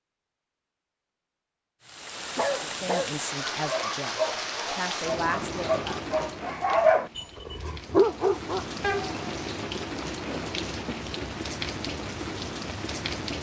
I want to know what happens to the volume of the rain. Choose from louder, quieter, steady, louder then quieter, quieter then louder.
quieter then louder.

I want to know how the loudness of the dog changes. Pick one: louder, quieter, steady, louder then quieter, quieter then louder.
louder.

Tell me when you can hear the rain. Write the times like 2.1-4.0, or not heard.
1.8-13.3.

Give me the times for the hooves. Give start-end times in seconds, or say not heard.
not heard.